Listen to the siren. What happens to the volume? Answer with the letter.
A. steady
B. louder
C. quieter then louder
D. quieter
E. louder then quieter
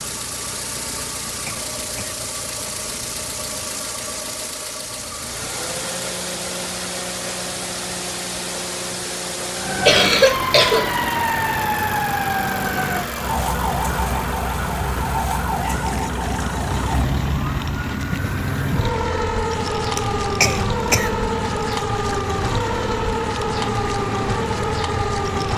A.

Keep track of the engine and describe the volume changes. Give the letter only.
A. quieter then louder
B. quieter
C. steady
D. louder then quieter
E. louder
C.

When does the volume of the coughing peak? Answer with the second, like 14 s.
10 s.